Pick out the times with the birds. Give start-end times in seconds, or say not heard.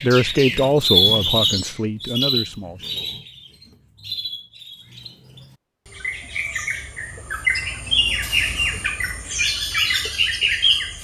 0.0-10.9.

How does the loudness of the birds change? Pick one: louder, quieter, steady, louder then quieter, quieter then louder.
quieter then louder.